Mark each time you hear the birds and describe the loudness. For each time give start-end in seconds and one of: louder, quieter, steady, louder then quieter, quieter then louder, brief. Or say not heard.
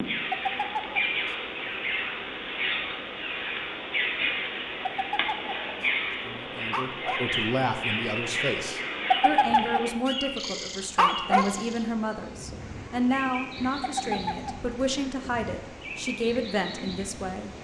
0.0-17.5 quieter.